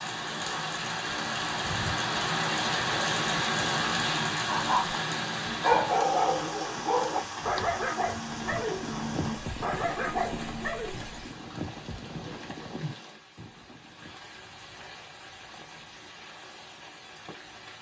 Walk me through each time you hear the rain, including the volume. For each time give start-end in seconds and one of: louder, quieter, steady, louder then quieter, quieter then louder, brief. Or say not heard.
0.0-17.7 quieter.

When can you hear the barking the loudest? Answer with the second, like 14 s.
6 s.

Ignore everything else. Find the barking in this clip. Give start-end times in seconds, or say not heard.
4.5-5.0, 5.6-10.9.